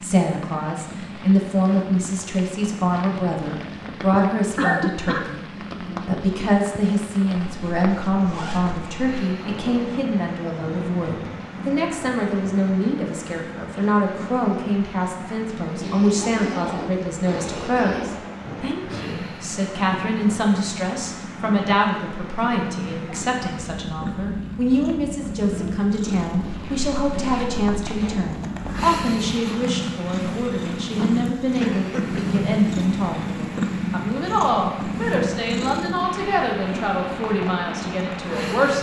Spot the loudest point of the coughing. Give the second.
5 s.